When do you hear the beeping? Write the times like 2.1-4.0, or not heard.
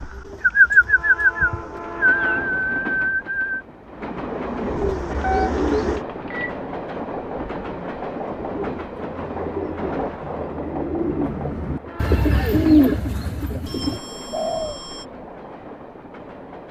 5.2-6.6, 13.7-15.1.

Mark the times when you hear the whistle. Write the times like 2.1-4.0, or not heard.
not heard.